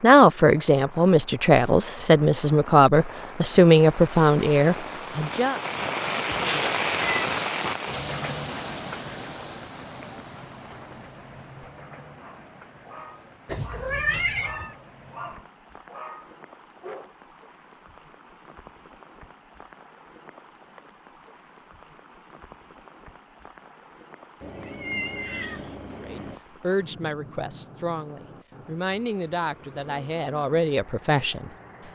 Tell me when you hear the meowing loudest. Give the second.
14 s.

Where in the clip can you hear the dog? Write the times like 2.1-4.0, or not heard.
12.2-17.1.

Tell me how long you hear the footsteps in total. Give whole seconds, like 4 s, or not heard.
not heard.